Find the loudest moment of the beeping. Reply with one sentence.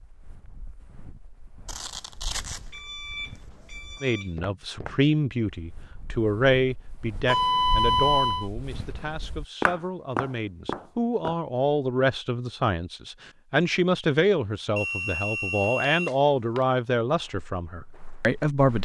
The loudest moment of the beeping is at 8 seconds.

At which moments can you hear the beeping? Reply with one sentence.
You can hear the beeping from 1.6 to 4.2 s, from 7.2 to 8.5 s and from 14.8 to 16.6 s.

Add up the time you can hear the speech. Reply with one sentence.
The speech can be heard for 15 seconds in total.